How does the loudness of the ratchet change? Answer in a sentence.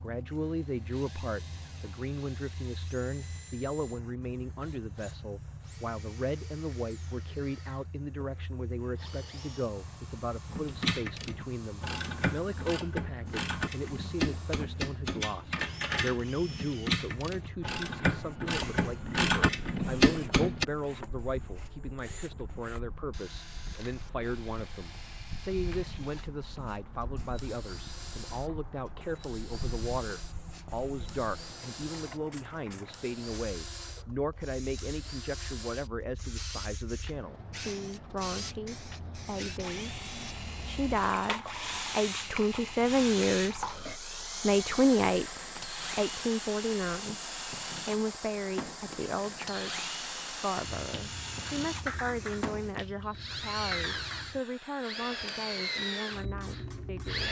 The volume of the ratchet goes up.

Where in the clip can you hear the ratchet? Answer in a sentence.
You can hear the ratchet from 10.5 to 20.6 s.